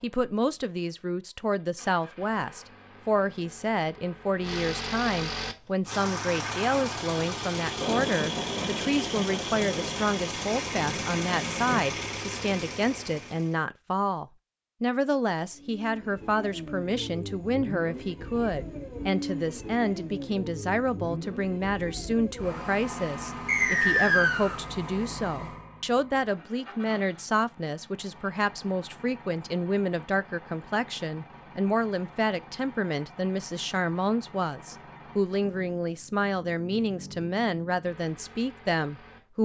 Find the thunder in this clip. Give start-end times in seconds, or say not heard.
7.8-11.8.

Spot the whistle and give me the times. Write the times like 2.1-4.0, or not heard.
23.4-24.6.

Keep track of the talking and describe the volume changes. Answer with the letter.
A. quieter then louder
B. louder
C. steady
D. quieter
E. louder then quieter
C.